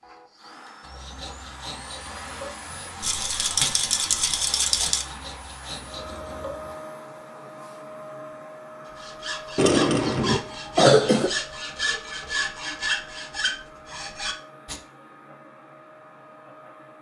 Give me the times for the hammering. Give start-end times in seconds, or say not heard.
not heard.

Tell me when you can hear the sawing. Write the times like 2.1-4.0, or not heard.
0.8-6.8, 8.8-14.8.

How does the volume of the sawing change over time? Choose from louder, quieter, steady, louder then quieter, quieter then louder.
louder.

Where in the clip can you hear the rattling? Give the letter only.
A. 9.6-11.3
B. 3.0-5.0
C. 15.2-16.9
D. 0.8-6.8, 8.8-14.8
B.